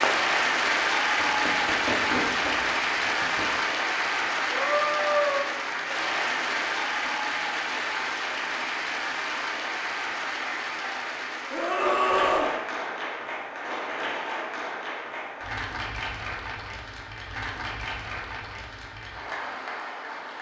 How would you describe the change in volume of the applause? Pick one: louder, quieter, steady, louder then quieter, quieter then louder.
quieter.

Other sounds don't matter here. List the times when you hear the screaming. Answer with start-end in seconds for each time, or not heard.
4.5-5.5, 11.5-12.6.